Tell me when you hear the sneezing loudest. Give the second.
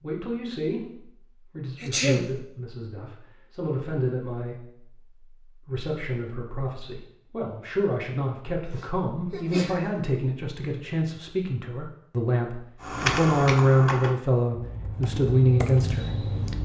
2 s.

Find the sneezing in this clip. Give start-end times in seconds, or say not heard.
1.8-2.3, 8.7-9.9.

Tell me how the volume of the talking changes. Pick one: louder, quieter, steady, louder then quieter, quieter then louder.
louder.